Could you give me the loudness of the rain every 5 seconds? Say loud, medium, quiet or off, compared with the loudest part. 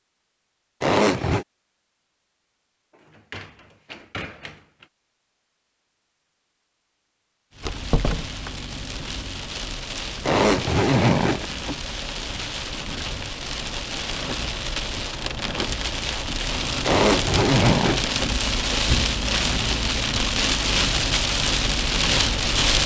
off, quiet, medium, loud, loud.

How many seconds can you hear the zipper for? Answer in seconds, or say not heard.
3 s.